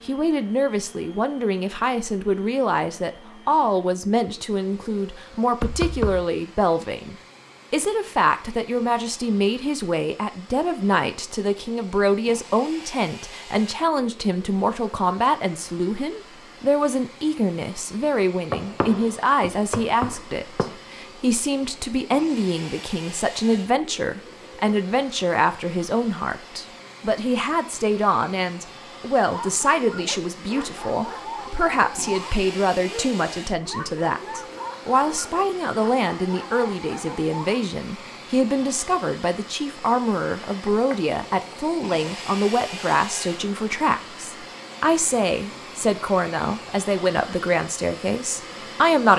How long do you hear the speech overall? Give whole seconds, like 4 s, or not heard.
49 s.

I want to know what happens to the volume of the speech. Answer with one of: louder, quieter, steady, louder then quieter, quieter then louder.
steady.